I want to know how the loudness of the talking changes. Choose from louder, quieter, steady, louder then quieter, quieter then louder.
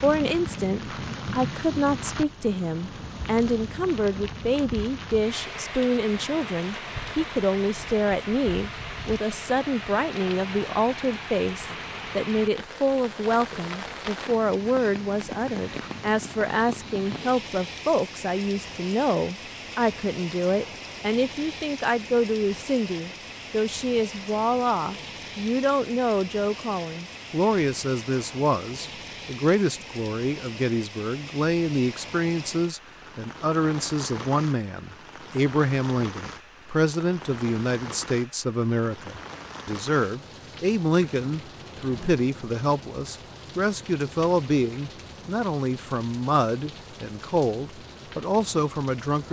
steady.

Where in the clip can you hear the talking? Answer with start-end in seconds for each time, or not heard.
0.0-49.2.